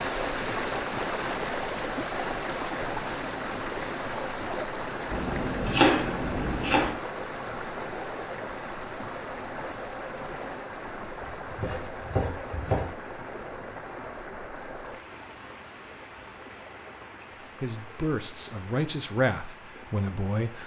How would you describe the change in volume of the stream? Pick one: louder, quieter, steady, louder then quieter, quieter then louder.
quieter.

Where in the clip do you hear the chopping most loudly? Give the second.
6 s.